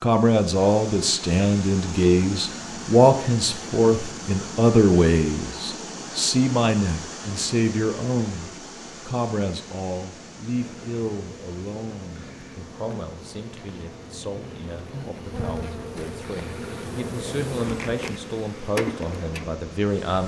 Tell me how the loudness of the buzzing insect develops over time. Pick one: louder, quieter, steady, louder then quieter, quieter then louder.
louder.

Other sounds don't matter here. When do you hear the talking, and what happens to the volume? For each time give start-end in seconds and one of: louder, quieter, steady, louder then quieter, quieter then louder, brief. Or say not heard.
0.0-20.2 quieter then louder.